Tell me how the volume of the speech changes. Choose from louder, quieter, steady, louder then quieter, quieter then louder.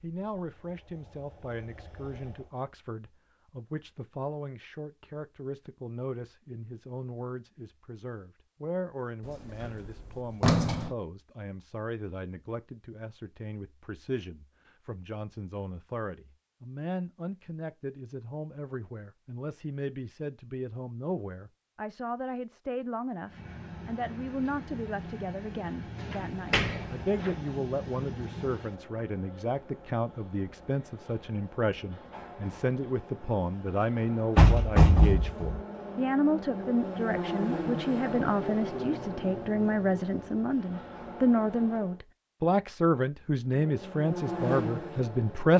louder.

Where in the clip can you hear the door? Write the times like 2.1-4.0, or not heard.
9.6-10.9, 26.1-27.3, 34.4-35.6.